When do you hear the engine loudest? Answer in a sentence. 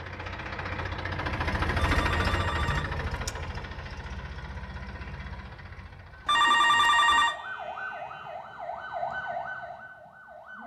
The volume of the engine peaks at 2 seconds.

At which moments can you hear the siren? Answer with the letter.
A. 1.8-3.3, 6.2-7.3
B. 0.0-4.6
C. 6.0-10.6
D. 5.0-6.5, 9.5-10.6
C.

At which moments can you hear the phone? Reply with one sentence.
You can hear the phone from 1.8 to 3.3 s and from 6.2 to 7.3 s.